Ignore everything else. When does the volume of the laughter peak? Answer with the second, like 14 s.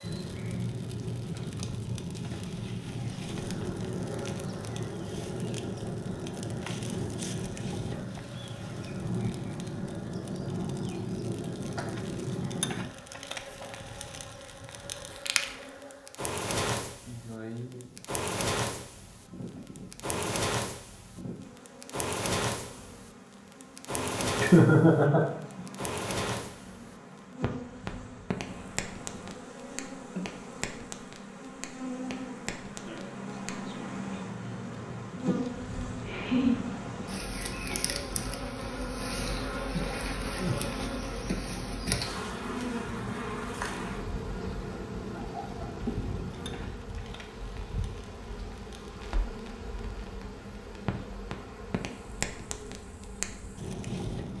25 s.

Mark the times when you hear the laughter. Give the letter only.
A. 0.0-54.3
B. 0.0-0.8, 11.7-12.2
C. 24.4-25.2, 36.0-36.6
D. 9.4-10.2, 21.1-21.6
C.